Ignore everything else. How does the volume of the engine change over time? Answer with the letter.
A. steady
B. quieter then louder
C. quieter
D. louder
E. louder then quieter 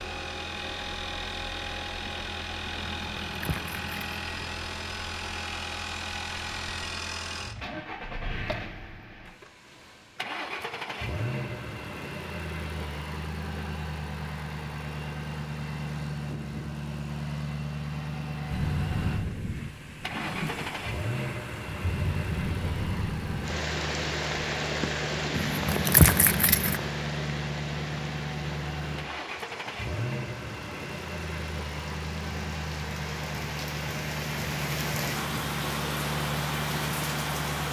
A.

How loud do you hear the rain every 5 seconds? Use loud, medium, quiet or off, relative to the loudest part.
off, off, off, loud, loud, loud, medium, loud.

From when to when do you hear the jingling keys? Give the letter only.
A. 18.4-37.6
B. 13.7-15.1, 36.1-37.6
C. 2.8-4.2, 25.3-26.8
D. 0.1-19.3
C.